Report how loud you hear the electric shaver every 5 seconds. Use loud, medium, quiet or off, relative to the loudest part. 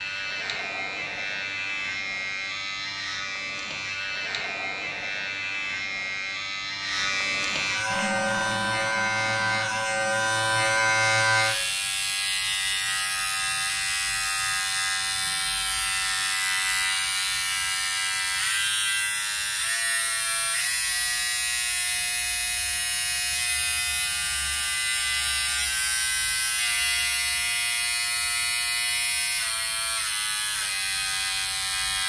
medium, loud, loud, loud, loud, loud, loud.